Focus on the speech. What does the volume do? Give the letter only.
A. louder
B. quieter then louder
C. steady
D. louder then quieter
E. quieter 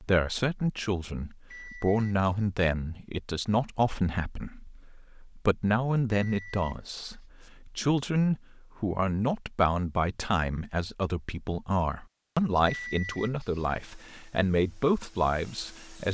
C.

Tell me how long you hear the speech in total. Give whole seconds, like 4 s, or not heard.
16 s.